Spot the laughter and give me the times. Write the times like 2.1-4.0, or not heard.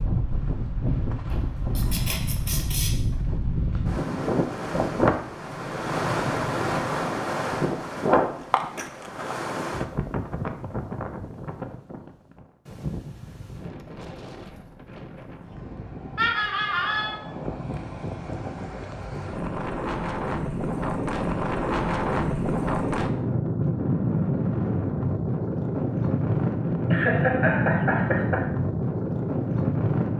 1.3-3.0, 16.1-17.1, 26.9-28.4.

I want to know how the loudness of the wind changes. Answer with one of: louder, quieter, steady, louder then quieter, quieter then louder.
quieter then louder.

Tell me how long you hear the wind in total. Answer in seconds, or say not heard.
30 s.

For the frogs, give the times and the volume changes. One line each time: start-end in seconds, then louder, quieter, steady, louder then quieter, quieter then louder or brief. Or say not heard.
not heard.